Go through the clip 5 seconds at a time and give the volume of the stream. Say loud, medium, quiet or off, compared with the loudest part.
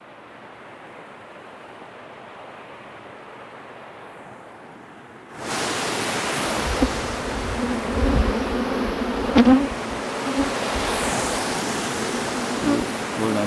quiet, loud, loud.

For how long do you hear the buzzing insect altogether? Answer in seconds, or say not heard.
7 s.